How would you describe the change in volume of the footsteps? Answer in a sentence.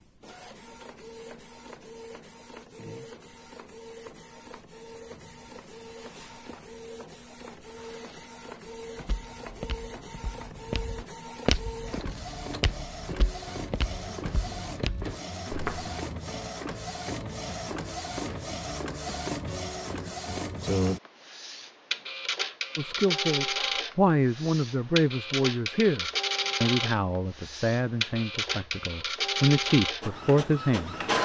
The loudness of the footsteps goes up, then down.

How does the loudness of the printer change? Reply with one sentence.
The volume of the printer goes up.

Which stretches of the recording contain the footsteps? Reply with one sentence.
You can hear the footsteps from 8.9 to 15.9 s.